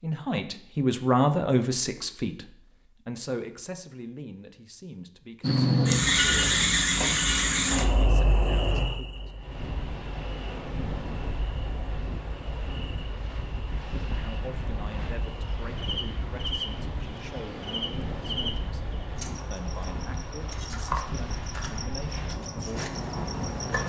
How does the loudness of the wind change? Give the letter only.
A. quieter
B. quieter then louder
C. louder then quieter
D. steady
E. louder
D.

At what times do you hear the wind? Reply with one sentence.
You can hear the wind from 9.3 to 23.8 s.